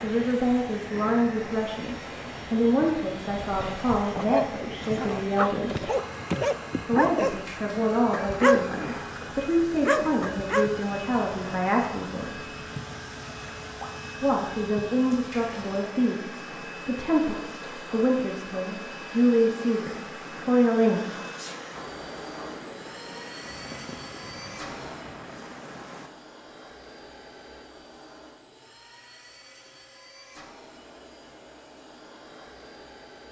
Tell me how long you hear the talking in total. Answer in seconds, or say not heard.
19 s.